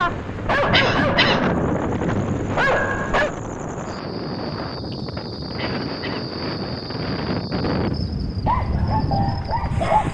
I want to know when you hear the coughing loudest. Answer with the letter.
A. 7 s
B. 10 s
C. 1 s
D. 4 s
C.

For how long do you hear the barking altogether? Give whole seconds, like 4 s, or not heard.
5 s.